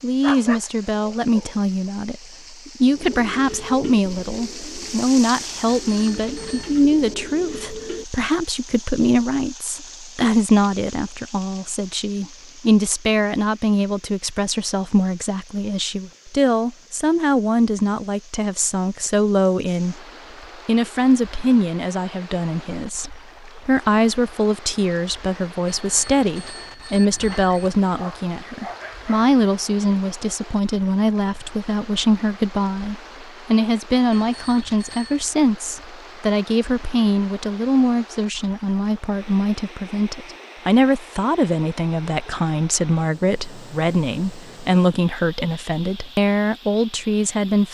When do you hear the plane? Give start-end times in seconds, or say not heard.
not heard.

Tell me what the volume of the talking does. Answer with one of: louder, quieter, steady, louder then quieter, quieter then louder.
steady.